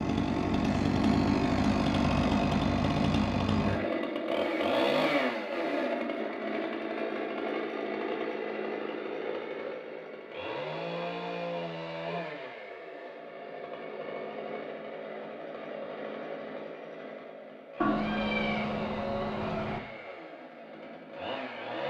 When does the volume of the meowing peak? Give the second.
18 s.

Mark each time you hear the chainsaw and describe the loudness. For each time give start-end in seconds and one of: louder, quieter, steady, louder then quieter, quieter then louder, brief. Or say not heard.
0.0-21.8 quieter.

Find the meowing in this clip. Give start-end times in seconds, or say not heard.
17.8-19.8.